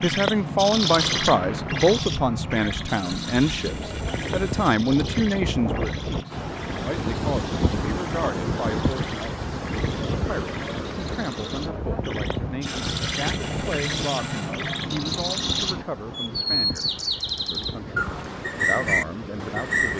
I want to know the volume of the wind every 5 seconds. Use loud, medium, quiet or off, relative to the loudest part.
medium, loud, loud, medium.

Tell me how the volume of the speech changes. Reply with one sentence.
The loudness of the speech goes down.